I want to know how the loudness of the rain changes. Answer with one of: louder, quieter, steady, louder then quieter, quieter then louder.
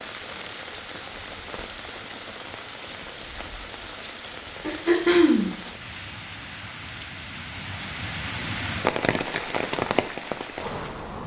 louder.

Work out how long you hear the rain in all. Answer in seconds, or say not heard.
11 s.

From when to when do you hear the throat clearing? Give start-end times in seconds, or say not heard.
4.6-5.5.